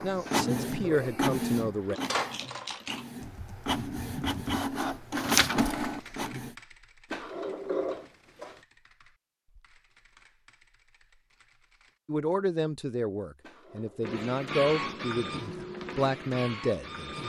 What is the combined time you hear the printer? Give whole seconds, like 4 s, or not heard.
10 s.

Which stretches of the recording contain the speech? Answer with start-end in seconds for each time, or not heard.
0.0-2.0, 12.1-17.2.